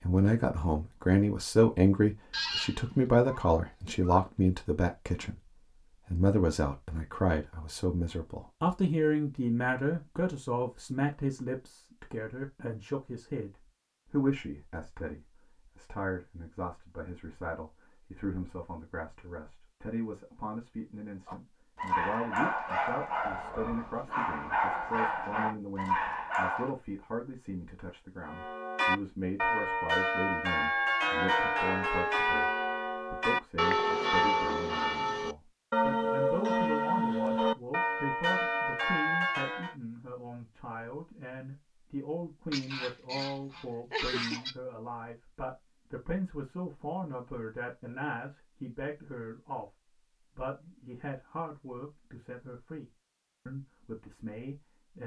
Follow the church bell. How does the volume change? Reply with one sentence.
The loudness of the church bell stays about the same.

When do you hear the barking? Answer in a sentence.
You can hear the barking from 21.2 to 26.7 s.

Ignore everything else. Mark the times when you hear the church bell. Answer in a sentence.
The church bell can be heard from 28.2 to 39.8 s.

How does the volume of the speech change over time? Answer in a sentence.
The volume of the speech goes down.